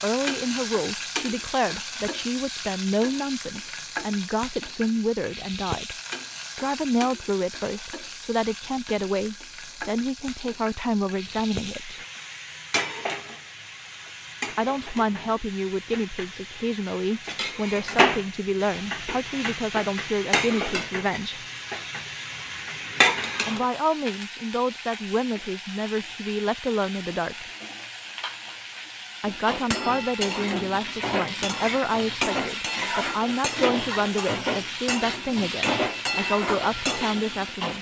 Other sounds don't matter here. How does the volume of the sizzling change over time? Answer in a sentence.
The volume of the sizzling goes up.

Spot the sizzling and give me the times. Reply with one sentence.
You can hear the sizzling from 0.0 to 37.7 s.